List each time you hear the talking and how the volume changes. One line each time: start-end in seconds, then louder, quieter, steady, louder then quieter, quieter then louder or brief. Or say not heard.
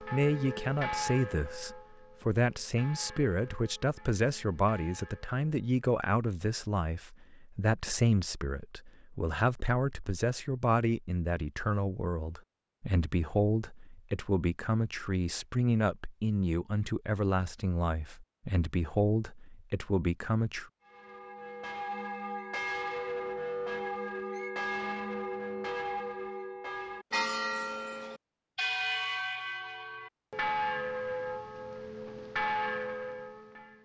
0.0-20.6 steady.